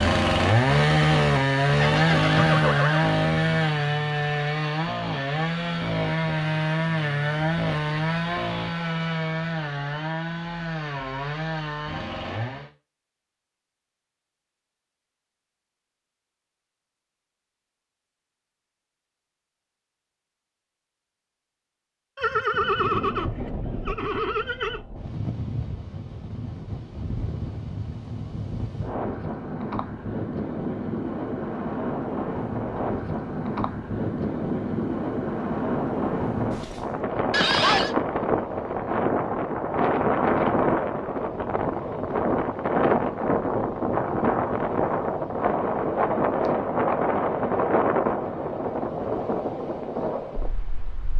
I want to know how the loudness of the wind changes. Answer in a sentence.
The loudness of the wind goes up.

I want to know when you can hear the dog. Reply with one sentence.
The dog can't be heard in this clip.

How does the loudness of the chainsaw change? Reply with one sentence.
The loudness of the chainsaw goes down.